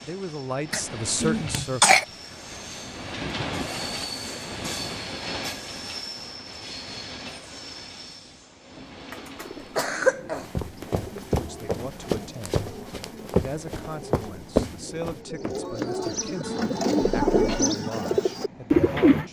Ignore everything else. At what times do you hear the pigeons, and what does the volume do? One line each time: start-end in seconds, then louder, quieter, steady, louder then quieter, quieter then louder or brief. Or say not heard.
8.9-19.2 louder.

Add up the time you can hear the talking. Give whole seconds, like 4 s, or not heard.
9 s.